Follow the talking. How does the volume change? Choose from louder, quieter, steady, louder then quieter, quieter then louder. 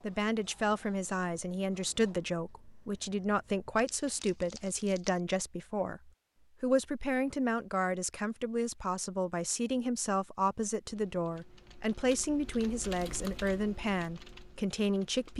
steady.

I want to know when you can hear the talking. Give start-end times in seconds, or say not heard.
0.0-15.3.